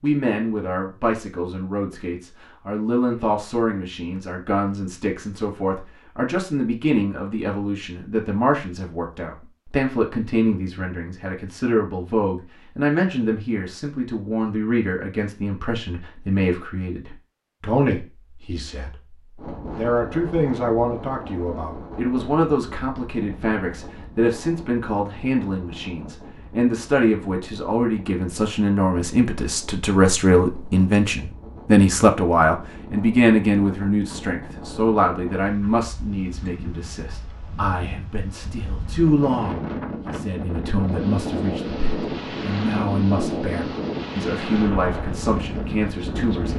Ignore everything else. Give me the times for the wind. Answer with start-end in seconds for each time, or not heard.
19.4-46.5.